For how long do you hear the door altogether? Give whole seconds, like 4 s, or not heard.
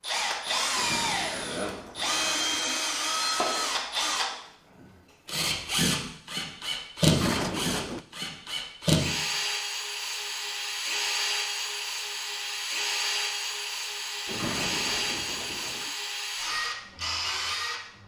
5 s.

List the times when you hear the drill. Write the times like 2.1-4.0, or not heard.
0.0-18.0.